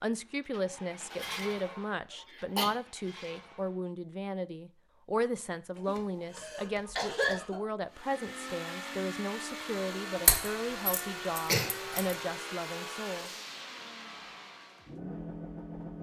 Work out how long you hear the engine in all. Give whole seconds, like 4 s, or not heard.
12 s.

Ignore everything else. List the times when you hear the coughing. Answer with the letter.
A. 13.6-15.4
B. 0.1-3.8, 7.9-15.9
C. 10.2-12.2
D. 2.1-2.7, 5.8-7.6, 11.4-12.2
D.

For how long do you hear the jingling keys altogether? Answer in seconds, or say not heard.
2 s.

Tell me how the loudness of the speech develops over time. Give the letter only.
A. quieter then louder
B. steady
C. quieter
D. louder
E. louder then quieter
B.